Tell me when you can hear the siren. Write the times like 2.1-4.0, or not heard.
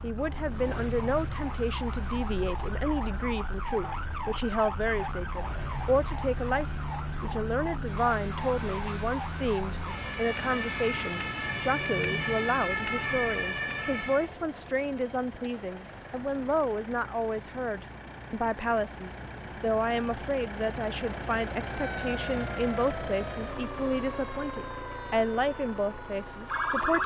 0.0-14.3, 21.6-27.0.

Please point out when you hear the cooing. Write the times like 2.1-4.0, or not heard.
not heard.